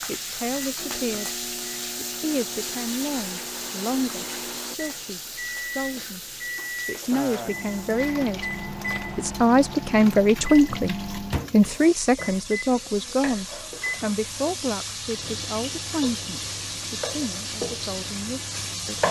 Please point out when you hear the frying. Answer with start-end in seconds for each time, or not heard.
0.0-19.0.